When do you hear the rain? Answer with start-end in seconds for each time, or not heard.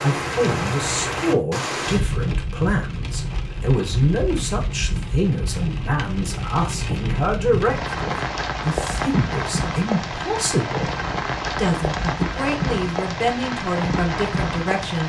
0.0-15.0.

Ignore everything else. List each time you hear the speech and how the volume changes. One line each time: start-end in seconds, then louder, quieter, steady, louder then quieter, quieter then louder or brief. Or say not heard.
0.0-15.0 steady.